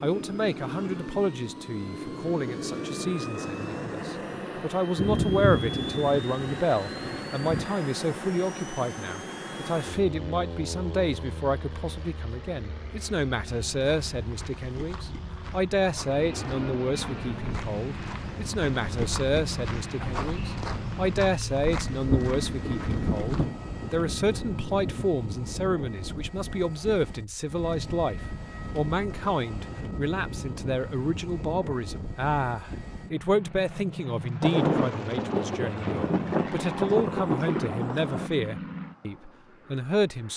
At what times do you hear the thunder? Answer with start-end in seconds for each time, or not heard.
5.0-7.7, 21.9-25.1, 34.4-38.3.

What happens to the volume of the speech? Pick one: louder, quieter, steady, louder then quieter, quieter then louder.
steady.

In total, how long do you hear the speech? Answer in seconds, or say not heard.
40 s.